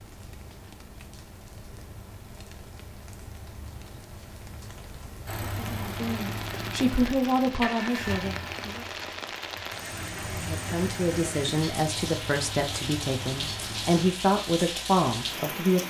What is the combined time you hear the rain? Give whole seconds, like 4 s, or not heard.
16 s.